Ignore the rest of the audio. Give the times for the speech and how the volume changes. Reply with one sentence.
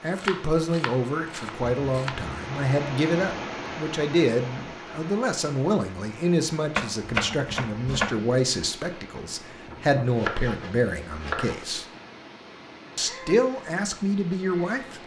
The speech can be heard from 0.0 to 11.8 s, at a steady volume; and briefly from 12.9 to 15.0 s.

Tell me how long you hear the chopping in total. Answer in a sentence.
You can hear the chopping for 5 seconds altogether.